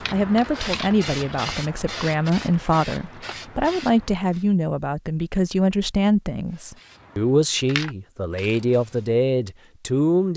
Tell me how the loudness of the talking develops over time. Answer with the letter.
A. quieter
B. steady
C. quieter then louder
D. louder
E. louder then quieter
B.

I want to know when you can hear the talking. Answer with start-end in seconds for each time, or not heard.
0.1-10.3.